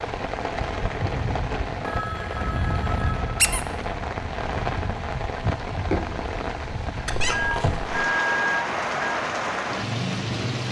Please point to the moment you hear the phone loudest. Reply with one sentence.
The loudest moment of the phone is at 8 seconds.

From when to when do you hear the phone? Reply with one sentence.
You can hear the phone from 1.8 to 3.3 s and from 7.3 to 9.2 s.